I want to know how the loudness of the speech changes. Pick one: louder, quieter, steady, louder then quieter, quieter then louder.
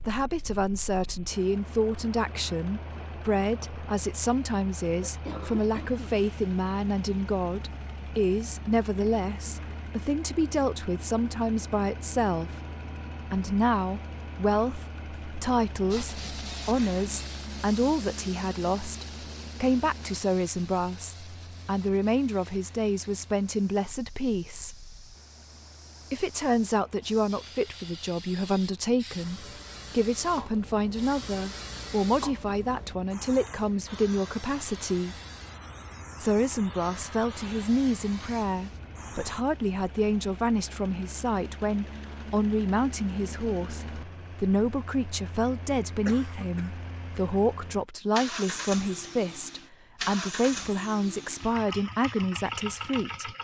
steady.